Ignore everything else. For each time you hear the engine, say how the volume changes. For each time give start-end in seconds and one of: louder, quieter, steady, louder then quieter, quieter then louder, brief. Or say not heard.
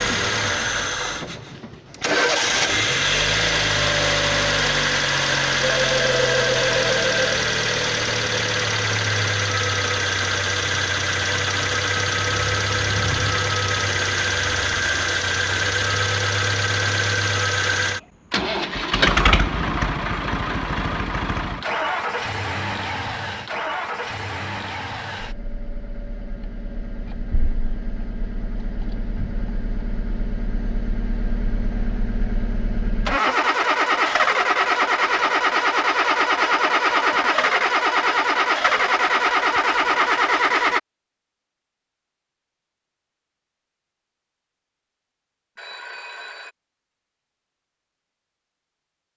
0.0-40.8 quieter then louder.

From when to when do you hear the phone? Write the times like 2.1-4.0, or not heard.
5.8-7.3, 45.5-46.5.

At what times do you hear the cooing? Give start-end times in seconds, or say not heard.
not heard.